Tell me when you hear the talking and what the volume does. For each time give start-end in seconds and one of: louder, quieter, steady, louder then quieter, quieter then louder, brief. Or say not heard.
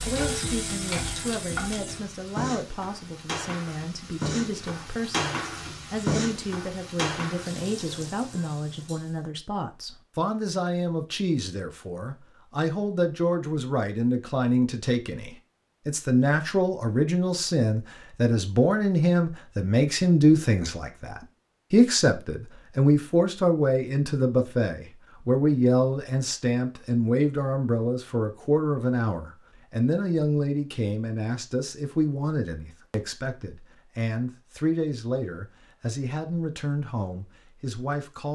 0.1-38.3 louder then quieter.